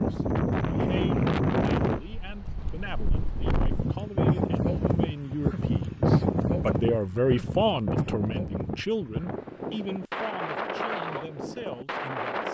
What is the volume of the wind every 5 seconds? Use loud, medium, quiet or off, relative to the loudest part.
loud, loud, medium.